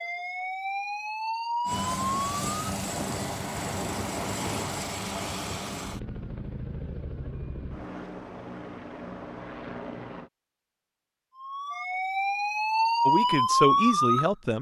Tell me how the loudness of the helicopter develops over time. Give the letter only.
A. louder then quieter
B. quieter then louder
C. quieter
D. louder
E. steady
C.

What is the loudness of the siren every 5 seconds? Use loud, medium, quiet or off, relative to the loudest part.
medium, off, loud.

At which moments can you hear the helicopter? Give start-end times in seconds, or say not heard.
1.6-10.3.